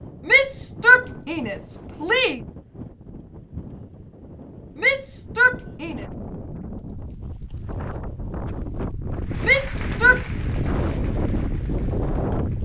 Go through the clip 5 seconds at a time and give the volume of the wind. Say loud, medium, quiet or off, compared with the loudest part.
quiet, medium, loud.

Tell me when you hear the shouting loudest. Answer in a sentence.
The volume of the shouting peaks at 1 second.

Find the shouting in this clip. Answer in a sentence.
You can hear the shouting from 0.2 to 2.4 s, from 4.8 to 6.0 s and from 9.4 to 10.2 s.